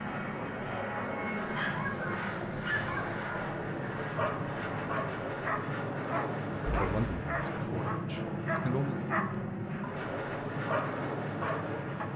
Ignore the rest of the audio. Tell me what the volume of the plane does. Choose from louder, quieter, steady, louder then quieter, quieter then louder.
steady.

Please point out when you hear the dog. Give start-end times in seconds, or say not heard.
1.4-12.1.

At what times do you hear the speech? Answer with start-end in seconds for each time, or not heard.
6.5-9.0.